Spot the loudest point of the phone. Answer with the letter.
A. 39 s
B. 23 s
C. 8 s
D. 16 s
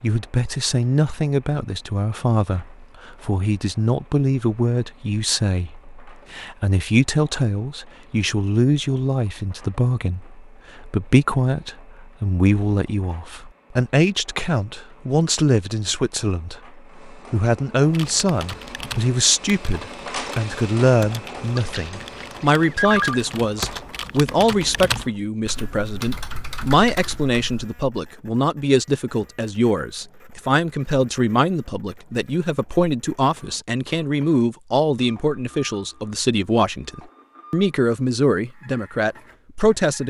B.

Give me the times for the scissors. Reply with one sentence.
The scissors can't be heard in this clip.